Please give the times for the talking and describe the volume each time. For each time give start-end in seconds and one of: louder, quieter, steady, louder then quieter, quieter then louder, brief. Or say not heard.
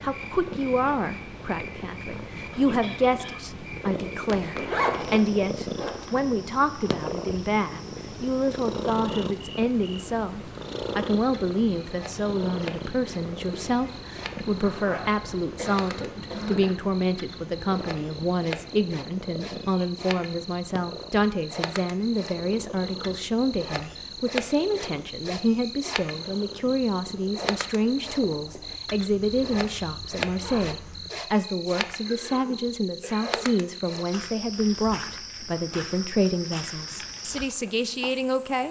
0.0-38.6 steady.